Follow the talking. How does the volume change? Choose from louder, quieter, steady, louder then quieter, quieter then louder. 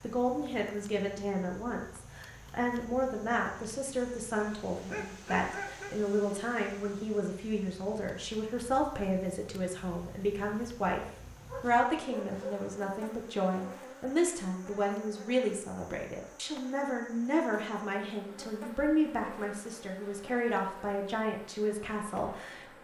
steady.